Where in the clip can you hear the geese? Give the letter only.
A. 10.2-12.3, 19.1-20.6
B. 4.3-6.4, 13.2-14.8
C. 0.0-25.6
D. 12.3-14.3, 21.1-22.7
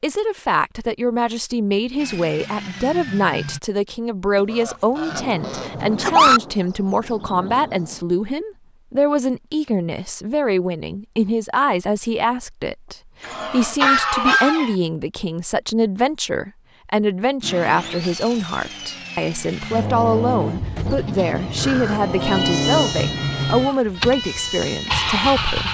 B.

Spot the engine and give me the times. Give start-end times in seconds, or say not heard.
1.9-3.6, 17.4-25.6.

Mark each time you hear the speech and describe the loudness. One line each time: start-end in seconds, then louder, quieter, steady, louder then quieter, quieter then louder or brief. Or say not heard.
0.0-25.6 steady.